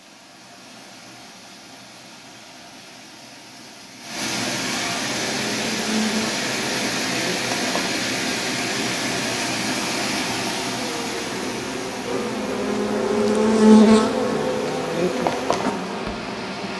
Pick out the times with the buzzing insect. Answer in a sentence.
You can hear the buzzing insect from 5.1 to 16.7 s.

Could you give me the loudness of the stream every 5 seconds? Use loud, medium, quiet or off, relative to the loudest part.
medium, loud, medium, medium.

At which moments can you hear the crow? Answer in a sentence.
You can't hear the crow here.